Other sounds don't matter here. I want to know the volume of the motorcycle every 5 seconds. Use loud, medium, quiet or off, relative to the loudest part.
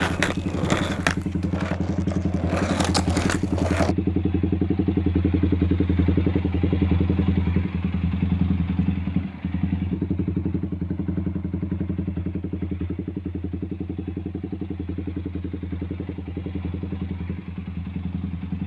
loud, loud, medium, medium.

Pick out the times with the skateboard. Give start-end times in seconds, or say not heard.
0.0-4.0.